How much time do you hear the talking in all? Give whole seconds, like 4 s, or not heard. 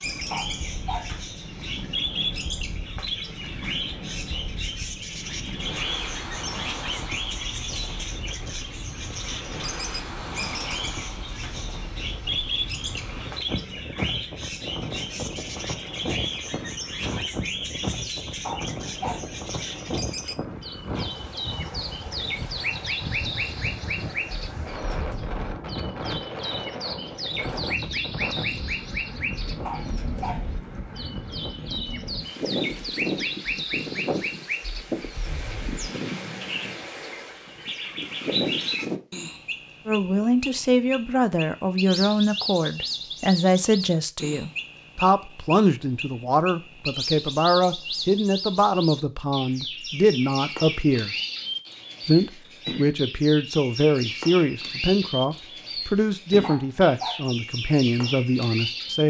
18 s.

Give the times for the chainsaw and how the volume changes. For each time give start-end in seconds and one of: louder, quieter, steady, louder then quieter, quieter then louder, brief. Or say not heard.
not heard.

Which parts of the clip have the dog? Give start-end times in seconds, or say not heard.
0.3-1.1, 18.4-19.3, 29.6-30.5, 56.4-57.2.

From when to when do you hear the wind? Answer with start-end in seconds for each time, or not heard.
0.0-39.0.